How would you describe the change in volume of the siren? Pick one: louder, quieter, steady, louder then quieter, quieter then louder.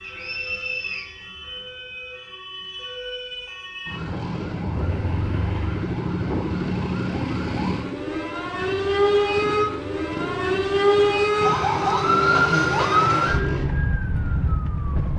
louder.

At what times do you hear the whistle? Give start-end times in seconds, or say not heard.
0.0-1.1.